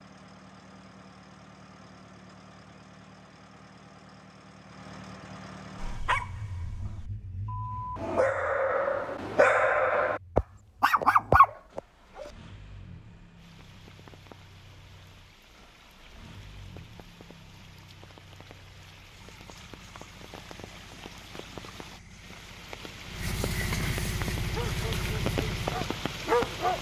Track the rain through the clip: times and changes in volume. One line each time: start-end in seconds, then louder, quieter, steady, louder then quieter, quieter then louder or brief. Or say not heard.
13.3-26.7 louder.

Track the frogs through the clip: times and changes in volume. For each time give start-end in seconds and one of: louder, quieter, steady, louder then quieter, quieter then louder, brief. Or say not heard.
not heard.